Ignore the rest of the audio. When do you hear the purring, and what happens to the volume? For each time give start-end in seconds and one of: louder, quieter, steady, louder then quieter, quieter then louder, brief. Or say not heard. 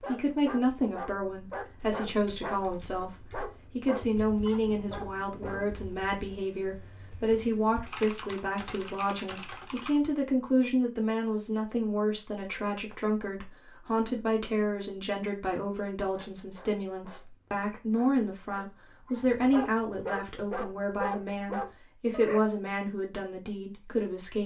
not heard.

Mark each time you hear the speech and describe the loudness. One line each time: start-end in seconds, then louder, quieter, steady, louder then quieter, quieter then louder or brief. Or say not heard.
0.0-24.4 steady.